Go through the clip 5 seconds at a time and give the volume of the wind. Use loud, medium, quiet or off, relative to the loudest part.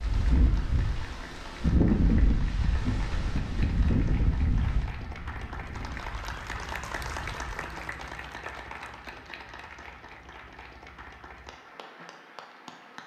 loud, quiet, off.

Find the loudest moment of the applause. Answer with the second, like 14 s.
7 s.